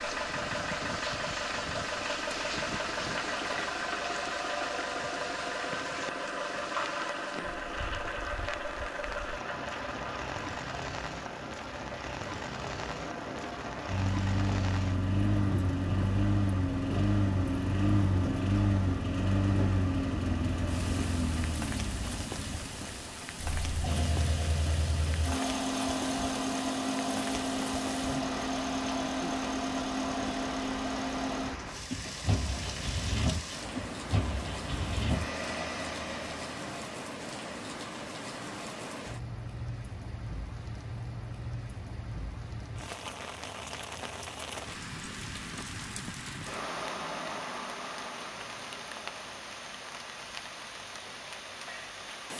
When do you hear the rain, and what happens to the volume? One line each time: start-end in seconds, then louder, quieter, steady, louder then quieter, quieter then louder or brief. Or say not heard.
0.0-52.3 steady.